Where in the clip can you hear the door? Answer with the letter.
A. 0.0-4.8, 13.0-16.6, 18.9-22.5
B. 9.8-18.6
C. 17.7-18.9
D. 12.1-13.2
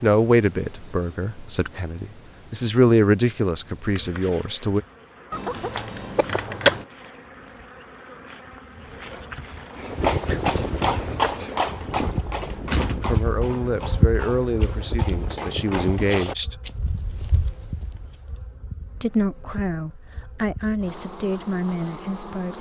D.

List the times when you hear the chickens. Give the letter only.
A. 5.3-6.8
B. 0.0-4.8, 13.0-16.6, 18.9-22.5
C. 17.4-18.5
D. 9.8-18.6
A.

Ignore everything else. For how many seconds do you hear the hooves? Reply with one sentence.
The hooves can be heard for 9 seconds in total.